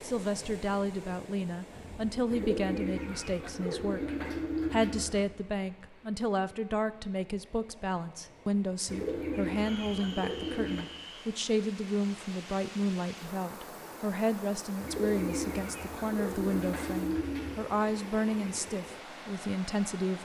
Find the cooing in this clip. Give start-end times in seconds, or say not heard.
2.3-5.2, 8.8-10.8, 14.8-17.7.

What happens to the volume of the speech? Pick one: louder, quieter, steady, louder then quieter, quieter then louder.
steady.